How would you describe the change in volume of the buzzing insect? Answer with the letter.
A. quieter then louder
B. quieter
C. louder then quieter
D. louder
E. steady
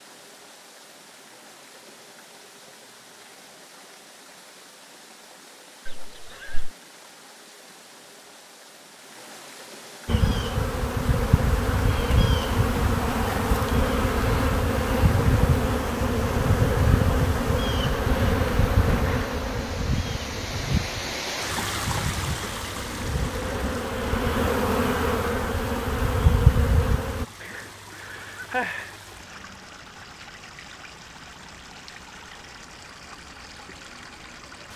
A.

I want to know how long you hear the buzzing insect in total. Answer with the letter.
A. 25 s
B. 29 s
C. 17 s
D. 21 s
C.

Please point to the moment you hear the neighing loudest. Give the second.
29 s.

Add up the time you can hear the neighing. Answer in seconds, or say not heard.
3 s.